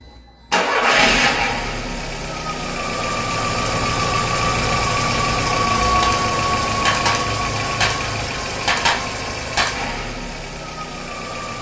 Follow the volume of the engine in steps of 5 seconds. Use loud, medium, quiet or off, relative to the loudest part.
loud, loud, medium.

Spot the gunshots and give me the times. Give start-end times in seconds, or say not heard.
5.8-9.8.